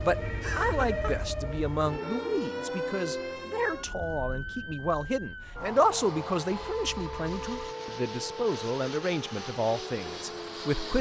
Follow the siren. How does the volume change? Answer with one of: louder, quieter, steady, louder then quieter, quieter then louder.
quieter.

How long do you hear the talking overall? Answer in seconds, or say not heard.
11 s.